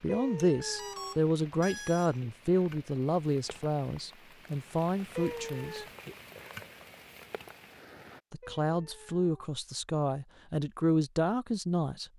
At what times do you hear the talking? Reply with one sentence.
The talking can be heard from 0.0 to 5.8 s and from 8.3 to 12.1 s.